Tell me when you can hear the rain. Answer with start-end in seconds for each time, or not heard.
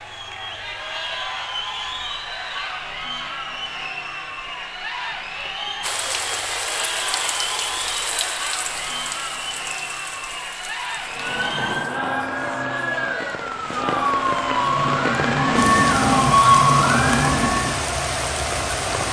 5.8-19.0.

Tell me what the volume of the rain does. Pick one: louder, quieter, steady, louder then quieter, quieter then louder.
quieter then louder.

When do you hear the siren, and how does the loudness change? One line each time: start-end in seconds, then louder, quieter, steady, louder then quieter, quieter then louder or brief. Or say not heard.
11.1-17.8 louder.